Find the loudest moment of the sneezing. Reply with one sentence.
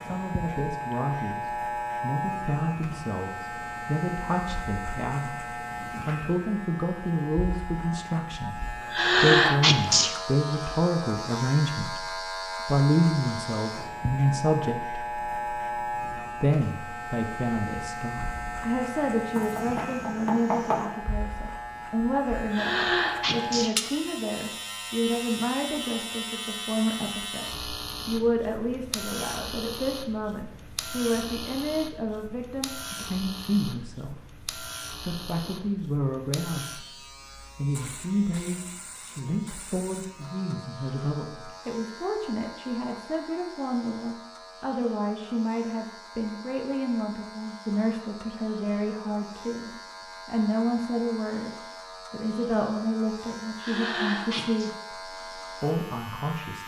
The volume of the sneezing peaks at 9 seconds.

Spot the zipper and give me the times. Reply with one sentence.
The zipper can't be heard in this clip.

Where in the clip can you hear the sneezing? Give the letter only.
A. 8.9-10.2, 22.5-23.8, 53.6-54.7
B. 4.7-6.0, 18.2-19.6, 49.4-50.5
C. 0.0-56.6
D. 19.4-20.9
A.